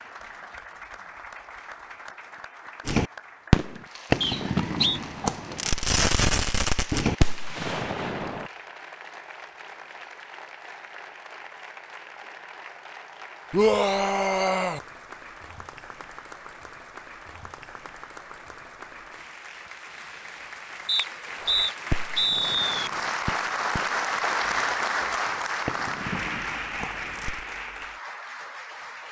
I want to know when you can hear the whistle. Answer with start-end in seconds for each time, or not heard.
4.2-5.0, 20.9-22.9.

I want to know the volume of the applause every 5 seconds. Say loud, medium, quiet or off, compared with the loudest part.
quiet, quiet, quiet, quiet, loud, loud.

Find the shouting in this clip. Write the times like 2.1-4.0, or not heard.
13.5-14.8.